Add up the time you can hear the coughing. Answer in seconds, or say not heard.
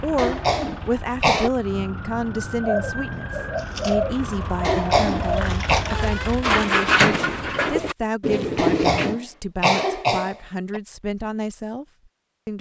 5 s.